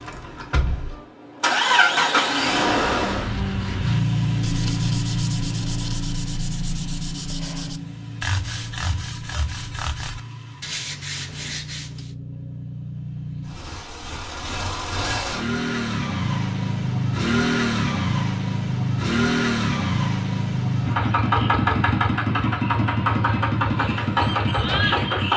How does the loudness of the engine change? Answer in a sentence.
The loudness of the engine goes down, then up.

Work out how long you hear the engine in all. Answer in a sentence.
You can hear the engine for 25 seconds altogether.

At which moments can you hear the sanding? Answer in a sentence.
You can hear the sanding from 3.0 to 12.1 s.